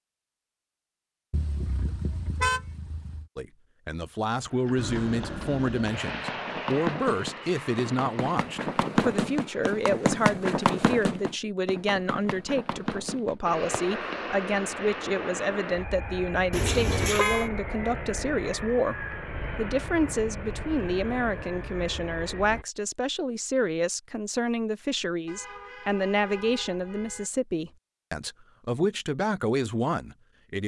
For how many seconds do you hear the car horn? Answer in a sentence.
You can hear the car horn for 5 seconds altogether.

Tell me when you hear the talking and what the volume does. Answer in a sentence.
You can hear the talking from 3.4 to 30.6 s, at a steady volume.